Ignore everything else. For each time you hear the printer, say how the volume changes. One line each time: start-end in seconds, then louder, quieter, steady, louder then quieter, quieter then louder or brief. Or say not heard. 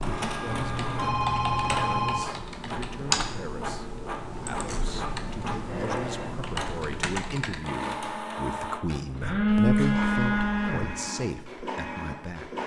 0.0-12.6 steady.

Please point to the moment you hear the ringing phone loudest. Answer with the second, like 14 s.
10 s.